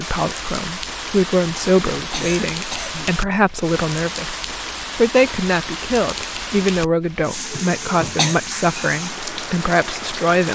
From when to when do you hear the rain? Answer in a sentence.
You can hear the rain from 0.0 to 10.5 s.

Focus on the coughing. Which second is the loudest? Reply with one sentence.
The volume of the coughing peaks at 8 seconds.